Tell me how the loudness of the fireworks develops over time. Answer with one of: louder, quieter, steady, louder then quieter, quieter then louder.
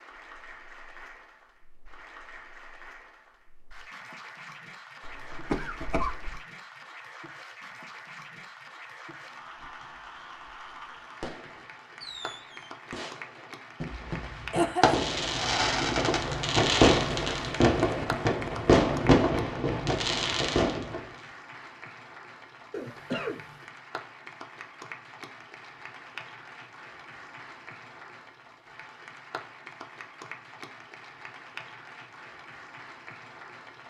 louder.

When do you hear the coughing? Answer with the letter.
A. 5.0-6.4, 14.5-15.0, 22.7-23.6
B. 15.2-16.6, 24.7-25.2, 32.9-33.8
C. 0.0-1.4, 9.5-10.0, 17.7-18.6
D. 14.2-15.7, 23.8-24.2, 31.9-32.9
A.